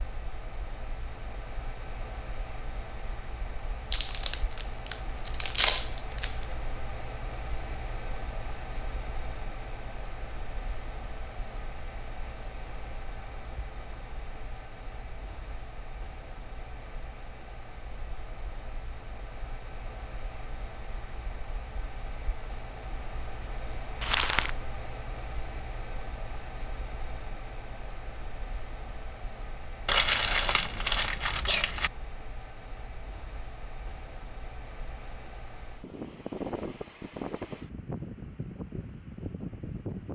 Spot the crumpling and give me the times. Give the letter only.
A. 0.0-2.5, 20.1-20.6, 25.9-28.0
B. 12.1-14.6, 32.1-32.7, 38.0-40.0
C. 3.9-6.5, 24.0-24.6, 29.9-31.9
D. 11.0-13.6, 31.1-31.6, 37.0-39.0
C.